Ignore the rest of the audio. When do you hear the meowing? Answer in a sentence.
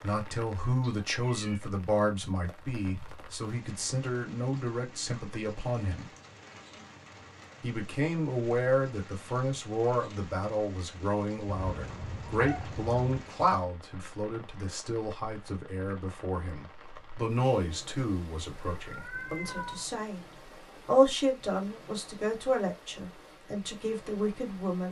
You can hear the meowing from 0.8 to 1.6 s, from 11.4 to 13.3 s and from 18.7 to 19.9 s.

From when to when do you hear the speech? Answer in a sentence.
The speech can be heard from 0.0 to 6.0 s, from 7.6 to 20.2 s and from 20.9 to 24.8 s.